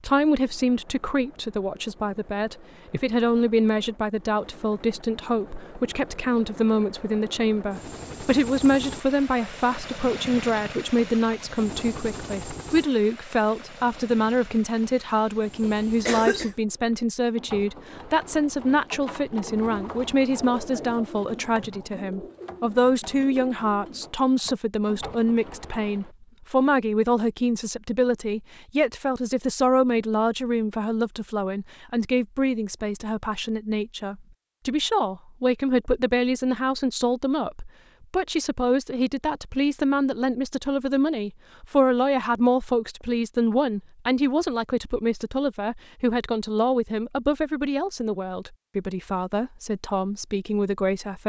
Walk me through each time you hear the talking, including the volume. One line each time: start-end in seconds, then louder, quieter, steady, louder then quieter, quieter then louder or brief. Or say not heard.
0.0-51.2 steady.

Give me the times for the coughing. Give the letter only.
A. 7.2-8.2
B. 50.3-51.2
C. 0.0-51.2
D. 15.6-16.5
D.